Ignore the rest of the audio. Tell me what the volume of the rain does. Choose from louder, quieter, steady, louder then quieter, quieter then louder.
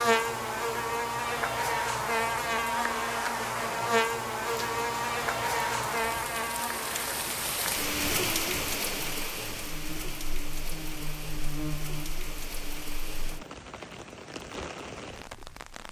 louder then quieter.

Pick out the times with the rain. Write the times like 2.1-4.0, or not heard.
4.5-15.8.